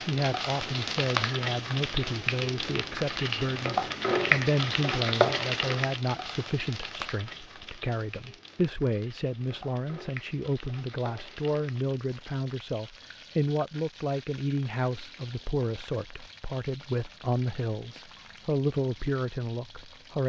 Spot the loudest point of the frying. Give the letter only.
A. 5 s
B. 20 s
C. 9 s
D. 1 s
A.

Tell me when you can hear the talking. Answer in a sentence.
You can hear the talking from 0.0 to 20.2 s.